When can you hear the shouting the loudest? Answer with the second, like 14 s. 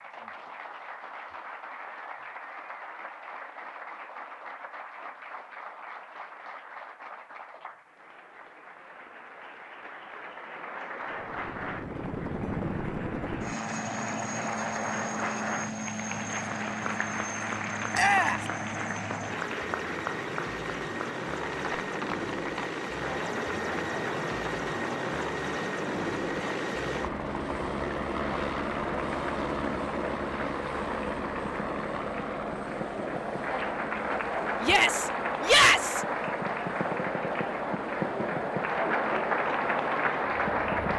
36 s.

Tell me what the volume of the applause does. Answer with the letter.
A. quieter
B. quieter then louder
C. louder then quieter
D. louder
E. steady
D.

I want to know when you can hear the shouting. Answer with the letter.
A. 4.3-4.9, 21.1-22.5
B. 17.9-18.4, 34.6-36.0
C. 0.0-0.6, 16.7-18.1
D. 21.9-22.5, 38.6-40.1
B.